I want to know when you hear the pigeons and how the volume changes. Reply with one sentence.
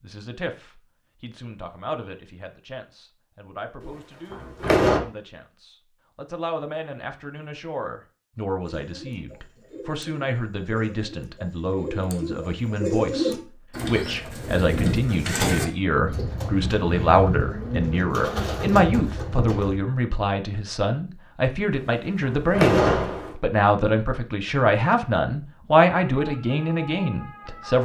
The pigeons can be heard from 8.6 to 19.8 s, getting louder.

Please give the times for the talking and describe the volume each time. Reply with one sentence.
You can hear the talking from 0.0 to 27.8 s, getting louder.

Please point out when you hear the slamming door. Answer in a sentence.
The slamming door can be heard from 3.8 to 5.0 s and from 21.8 to 23.3 s.